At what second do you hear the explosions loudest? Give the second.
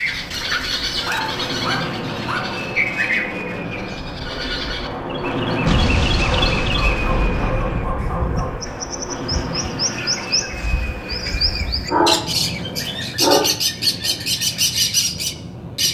6 s.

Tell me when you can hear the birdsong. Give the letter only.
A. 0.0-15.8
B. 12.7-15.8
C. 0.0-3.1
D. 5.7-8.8
A.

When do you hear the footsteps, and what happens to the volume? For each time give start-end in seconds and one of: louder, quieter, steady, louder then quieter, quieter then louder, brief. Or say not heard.
not heard.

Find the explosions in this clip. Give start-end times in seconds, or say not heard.
5.7-8.8.